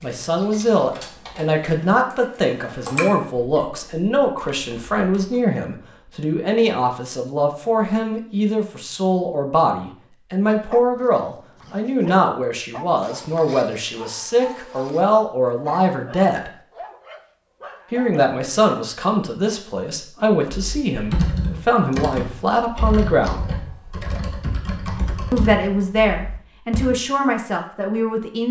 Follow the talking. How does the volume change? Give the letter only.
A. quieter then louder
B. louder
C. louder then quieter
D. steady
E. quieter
D.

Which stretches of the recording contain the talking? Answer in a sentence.
You can hear the talking from 0.0 to 16.5 s, from 17.9 to 23.4 s and from 25.3 to 28.4 s.